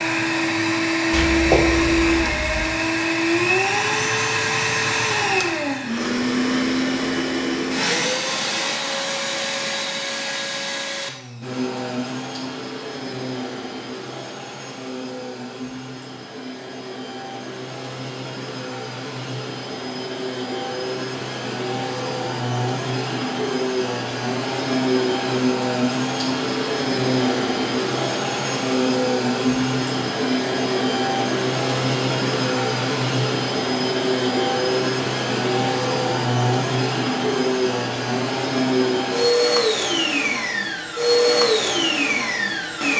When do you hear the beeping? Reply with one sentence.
The beeping can be heard from 1.1 to 2.5 s.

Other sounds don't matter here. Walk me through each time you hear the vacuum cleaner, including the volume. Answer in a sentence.
The vacuum cleaner can be heard from 0.0 to 42.9 s, getting quieter then louder.